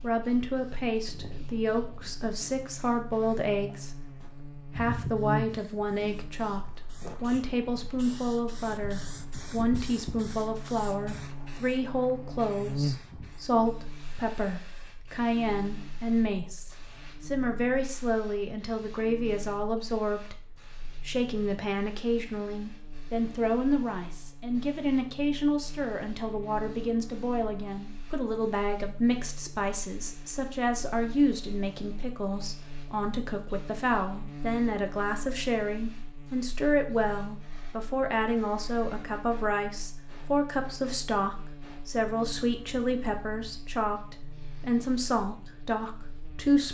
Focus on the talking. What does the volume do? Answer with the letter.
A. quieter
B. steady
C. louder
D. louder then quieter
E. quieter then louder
B.